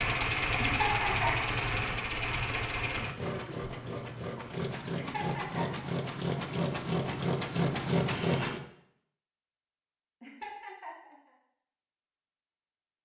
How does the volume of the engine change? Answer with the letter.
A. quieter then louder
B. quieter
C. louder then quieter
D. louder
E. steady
A.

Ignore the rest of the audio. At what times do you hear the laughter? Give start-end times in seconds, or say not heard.
0.6-1.8, 4.9-6.0, 10.2-11.2.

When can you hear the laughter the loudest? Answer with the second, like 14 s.
1 s.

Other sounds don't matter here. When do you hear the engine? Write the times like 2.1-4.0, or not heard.
0.0-8.6.